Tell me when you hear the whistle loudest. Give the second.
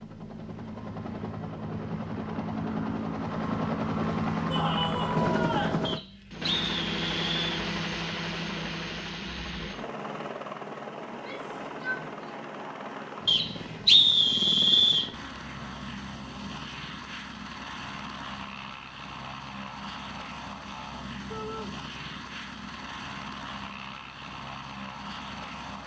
14 s.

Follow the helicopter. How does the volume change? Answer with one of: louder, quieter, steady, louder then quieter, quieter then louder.
quieter.